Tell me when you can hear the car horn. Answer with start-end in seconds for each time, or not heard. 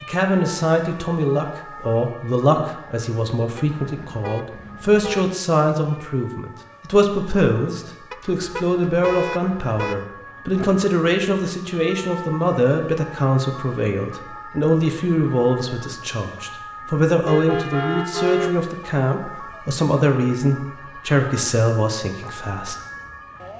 3.5-5.3, 8.1-10.0, 17.2-18.6.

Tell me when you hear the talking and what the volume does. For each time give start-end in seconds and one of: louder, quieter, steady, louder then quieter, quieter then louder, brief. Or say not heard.
0.0-22.8 steady.